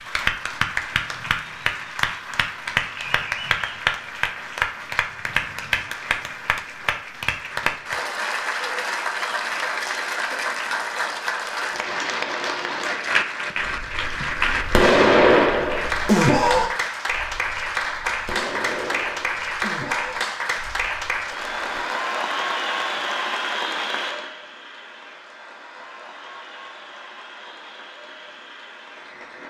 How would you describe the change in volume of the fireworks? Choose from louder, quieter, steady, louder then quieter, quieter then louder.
quieter.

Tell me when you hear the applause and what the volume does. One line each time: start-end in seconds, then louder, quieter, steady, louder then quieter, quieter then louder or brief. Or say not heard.
0.0-29.4 quieter.